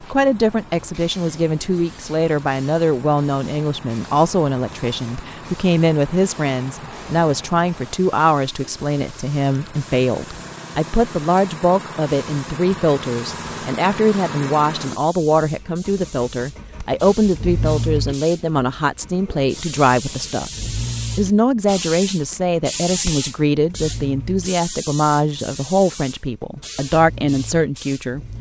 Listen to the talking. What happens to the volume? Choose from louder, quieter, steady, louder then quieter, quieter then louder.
steady.